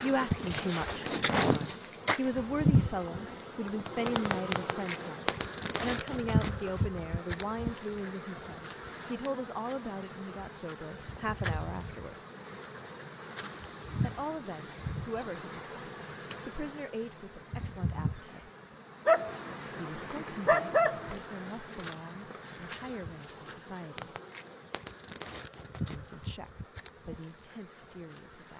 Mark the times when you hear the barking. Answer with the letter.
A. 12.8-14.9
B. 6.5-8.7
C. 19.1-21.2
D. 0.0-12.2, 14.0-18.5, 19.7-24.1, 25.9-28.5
C.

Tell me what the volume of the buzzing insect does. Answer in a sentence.
The volume of the buzzing insect goes down.